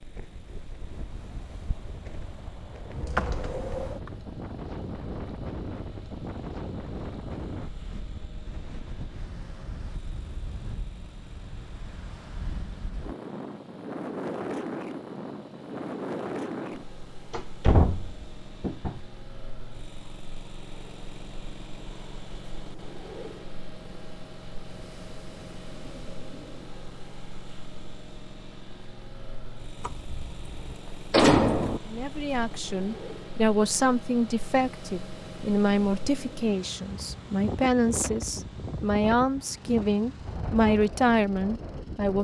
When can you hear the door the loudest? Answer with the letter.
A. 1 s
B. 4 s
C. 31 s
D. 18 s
C.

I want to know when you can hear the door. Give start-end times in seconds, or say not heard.
2.9-4.1, 17.3-19.0, 29.8-31.8.